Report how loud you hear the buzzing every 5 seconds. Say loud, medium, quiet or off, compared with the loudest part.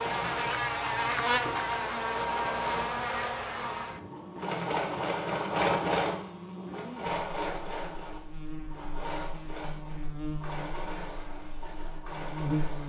loud, quiet, medium.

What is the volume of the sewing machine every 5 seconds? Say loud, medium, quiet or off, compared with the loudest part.
loud, loud, medium.